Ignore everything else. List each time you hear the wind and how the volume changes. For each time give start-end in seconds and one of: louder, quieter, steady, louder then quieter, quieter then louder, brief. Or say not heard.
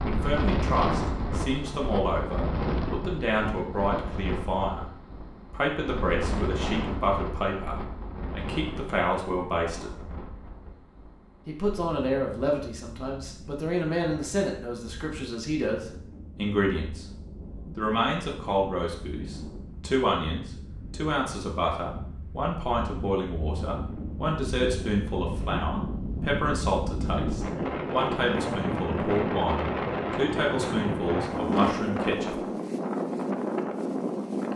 0.0-34.5 quieter then louder.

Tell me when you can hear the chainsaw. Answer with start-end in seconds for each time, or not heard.
not heard.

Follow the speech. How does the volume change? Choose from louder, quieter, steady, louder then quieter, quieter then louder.
steady.